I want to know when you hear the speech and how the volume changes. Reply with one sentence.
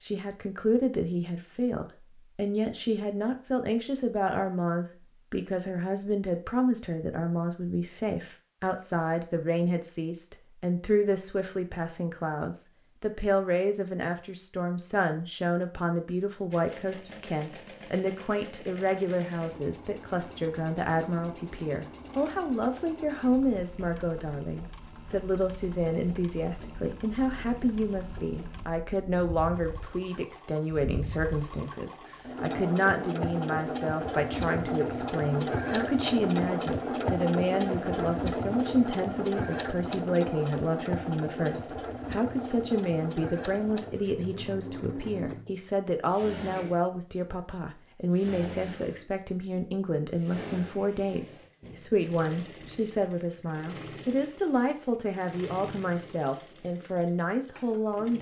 The speech can be heard from 0.0 to 58.1 s, at a steady volume.